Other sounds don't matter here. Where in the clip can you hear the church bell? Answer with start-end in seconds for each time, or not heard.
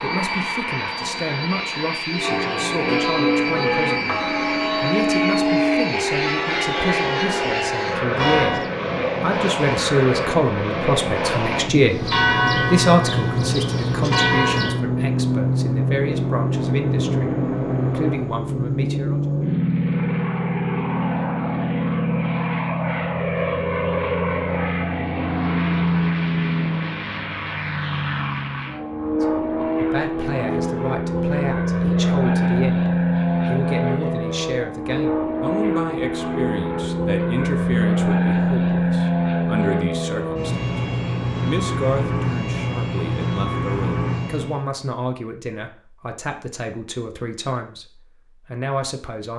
2.1-8.7, 11.8-14.8.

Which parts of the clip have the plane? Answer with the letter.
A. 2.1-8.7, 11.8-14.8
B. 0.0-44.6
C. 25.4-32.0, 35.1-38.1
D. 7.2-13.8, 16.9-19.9
B.